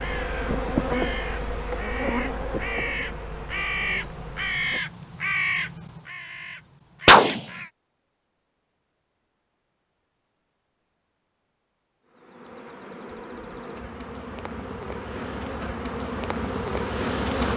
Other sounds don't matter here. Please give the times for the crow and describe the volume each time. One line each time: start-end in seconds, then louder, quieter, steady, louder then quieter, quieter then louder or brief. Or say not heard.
0.0-7.7 louder.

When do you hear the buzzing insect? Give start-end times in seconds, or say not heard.
0.0-4.9, 12.1-17.5.